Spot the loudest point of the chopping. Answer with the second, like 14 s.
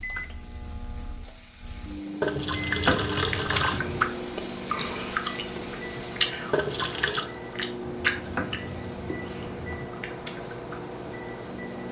3 s.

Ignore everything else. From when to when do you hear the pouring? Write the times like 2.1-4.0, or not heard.
2.2-3.8, 6.5-7.3.